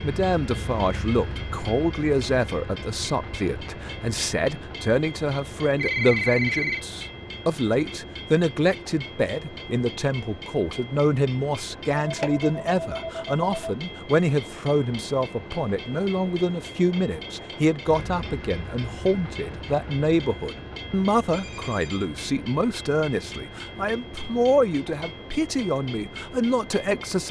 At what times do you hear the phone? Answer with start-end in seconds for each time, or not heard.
5.7-6.8, 11.9-13.8, 21.3-22.1.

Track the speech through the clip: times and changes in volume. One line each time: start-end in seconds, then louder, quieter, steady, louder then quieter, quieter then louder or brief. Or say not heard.
0.0-27.2 steady.